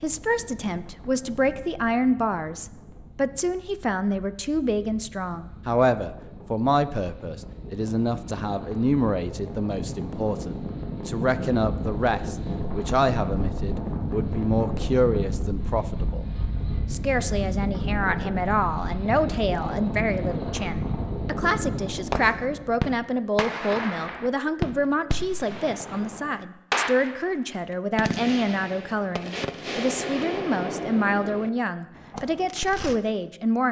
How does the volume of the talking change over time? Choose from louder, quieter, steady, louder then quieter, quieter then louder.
steady.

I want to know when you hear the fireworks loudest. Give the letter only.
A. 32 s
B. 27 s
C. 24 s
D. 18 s
B.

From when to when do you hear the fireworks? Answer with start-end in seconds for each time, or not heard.
22.1-27.4, 27.9-33.0.